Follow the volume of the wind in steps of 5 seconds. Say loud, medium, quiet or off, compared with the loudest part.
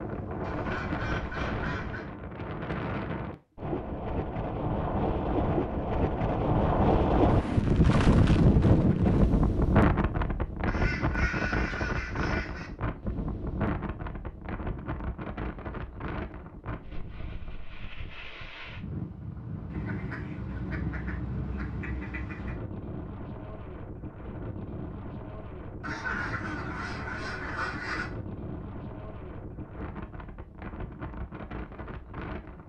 medium, loud, medium, quiet, quiet, quiet, quiet.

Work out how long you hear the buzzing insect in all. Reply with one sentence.
The buzzing insect can't be heard in this clip.